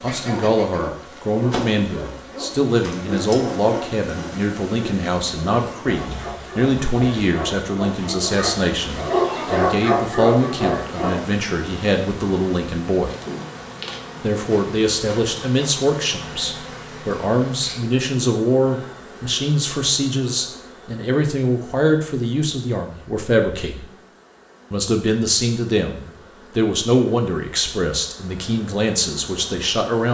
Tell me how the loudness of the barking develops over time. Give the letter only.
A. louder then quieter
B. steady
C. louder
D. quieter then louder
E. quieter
C.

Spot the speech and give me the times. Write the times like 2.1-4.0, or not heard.
0.0-13.1, 14.2-23.9, 24.7-30.0.